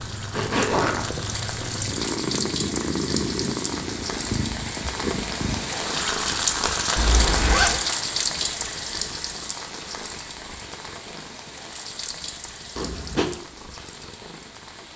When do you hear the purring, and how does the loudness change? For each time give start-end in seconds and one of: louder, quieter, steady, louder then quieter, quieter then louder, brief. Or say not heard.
0.0-14.9 quieter.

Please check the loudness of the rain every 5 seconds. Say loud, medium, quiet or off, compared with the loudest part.
medium, loud, quiet.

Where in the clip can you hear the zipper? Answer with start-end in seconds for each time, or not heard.
0.3-1.1, 7.0-7.8, 12.8-13.3.